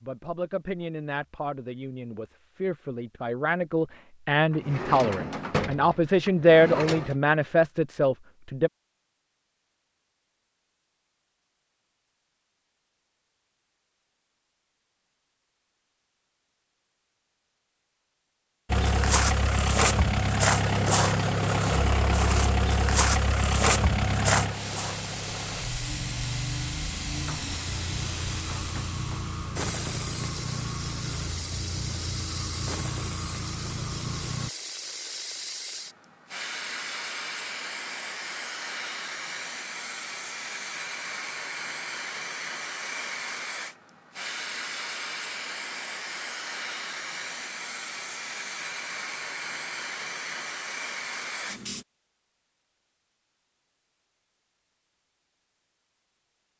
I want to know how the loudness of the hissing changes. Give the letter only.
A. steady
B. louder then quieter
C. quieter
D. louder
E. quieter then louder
A.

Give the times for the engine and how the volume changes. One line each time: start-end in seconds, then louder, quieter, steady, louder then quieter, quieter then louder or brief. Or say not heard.
18.7-34.5 quieter.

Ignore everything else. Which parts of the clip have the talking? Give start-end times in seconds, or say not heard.
0.0-8.7.